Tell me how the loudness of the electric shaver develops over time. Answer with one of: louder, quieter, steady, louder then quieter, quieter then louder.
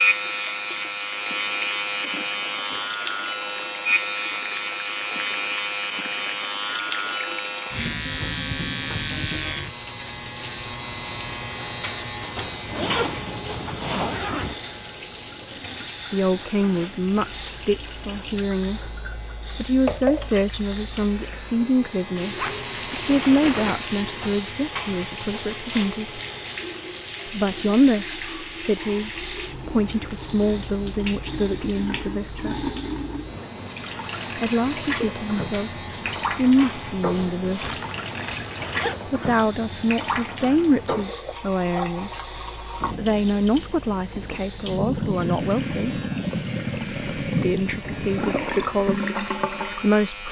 quieter.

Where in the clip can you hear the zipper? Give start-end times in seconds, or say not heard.
12.7-14.6, 22.4-23.8, 37.6-39.0.